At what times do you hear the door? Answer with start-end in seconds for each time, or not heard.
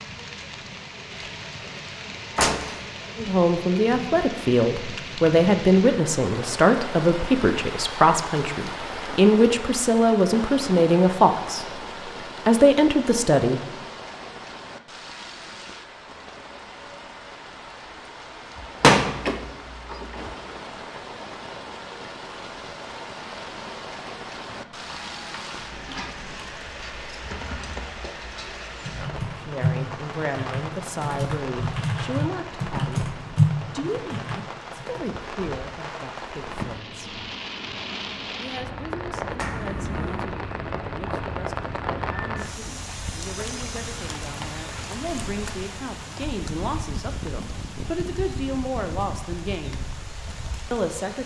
2.4-2.8, 18.6-20.4, 39.4-40.2.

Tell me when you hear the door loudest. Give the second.
19 s.